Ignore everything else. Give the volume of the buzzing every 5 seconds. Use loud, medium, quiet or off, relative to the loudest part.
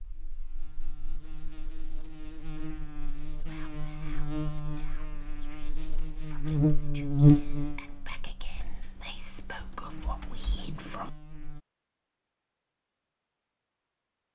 quiet, loud, quiet.